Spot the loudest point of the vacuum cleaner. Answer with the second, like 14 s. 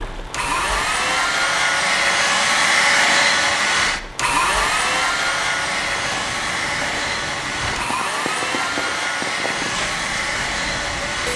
3 s.